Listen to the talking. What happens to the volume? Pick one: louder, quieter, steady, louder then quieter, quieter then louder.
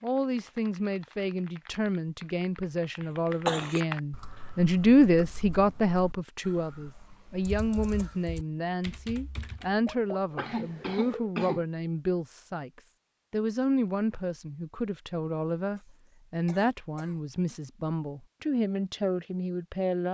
louder then quieter.